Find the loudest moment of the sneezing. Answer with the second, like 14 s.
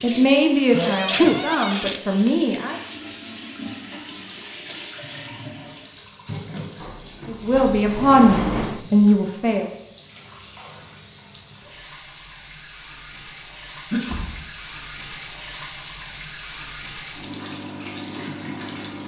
1 s.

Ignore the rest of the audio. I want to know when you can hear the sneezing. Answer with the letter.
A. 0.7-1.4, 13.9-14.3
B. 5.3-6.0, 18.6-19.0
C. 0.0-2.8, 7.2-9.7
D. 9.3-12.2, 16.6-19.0
A.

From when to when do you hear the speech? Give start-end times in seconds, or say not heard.
0.0-2.8, 7.2-9.7.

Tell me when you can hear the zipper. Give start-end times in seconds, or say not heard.
not heard.